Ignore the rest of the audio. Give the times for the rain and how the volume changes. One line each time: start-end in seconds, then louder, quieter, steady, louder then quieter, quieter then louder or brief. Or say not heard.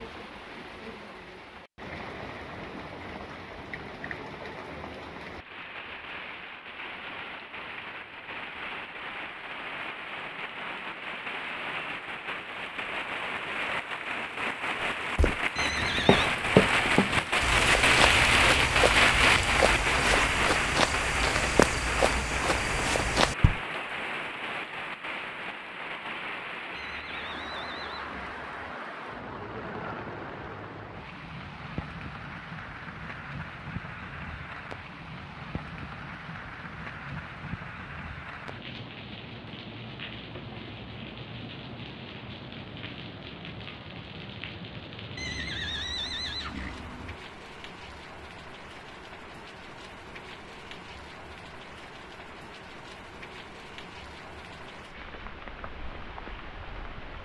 0.0-57.1 louder then quieter.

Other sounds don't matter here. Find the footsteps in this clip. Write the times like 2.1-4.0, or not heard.
15.2-23.6.